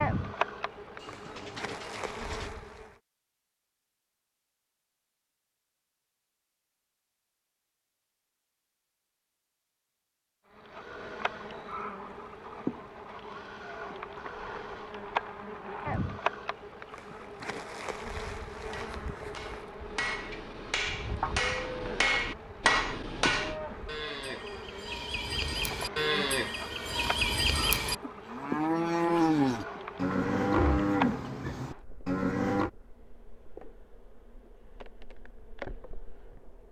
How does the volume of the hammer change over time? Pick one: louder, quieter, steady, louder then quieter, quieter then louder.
louder.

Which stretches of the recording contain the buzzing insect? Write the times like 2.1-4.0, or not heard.
0.0-3.0, 10.6-36.6.